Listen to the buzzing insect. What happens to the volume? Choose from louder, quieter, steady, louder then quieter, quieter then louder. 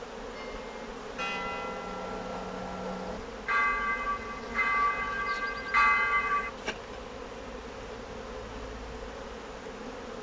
steady.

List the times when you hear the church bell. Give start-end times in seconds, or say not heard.
0.3-6.5.